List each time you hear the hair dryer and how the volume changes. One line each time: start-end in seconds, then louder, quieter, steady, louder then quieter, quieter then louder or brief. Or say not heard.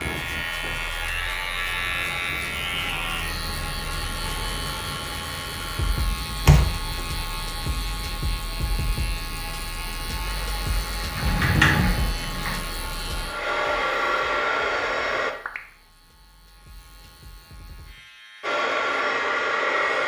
0.2-6.0 steady
10.2-15.3 louder
18.4-20.0 brief.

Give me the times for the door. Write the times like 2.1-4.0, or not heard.
6.5-7.0, 11.2-12.6.